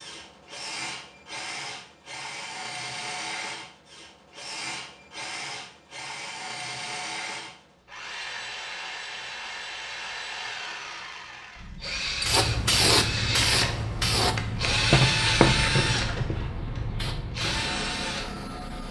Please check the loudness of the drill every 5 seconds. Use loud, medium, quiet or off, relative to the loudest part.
medium, medium, loud, loud.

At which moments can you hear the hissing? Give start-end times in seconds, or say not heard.
12.2-18.8.